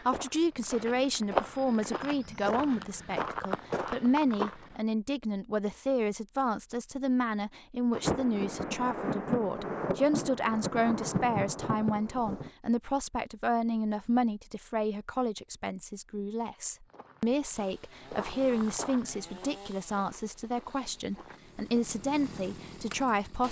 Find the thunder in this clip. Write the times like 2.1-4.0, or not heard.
7.9-12.5.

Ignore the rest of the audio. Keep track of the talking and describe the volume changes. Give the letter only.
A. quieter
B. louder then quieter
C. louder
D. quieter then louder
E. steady
E.